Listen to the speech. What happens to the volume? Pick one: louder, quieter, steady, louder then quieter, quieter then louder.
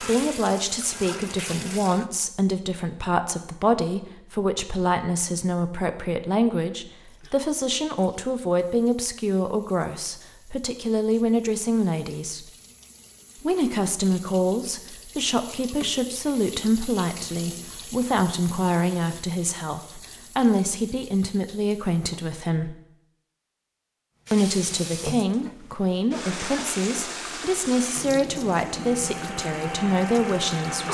steady.